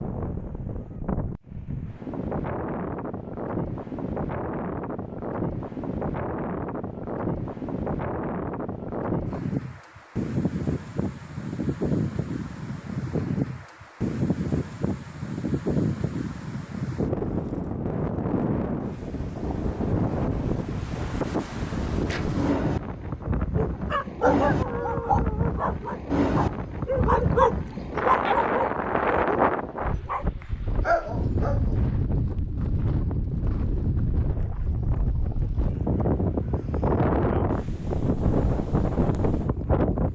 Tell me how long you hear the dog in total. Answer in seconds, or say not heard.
9 s.